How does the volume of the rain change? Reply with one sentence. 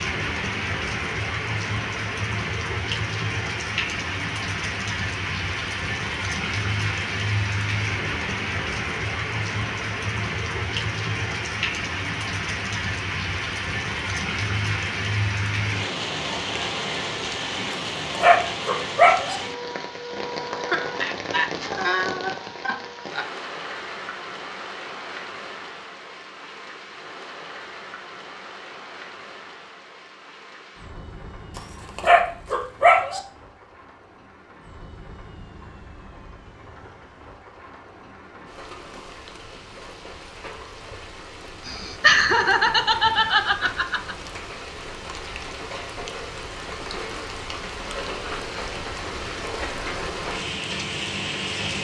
The volume of the rain goes down, then up.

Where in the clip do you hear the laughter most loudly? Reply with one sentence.
The volume of the laughter peaks at 42 seconds.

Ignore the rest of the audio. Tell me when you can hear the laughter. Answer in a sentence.
The laughter can be heard from 20.7 to 23.2 s and from 41.6 to 44.1 s.